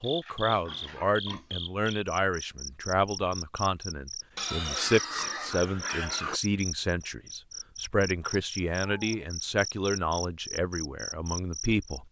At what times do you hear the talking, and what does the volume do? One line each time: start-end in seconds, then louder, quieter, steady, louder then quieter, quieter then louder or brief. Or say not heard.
0.0-12.0 steady.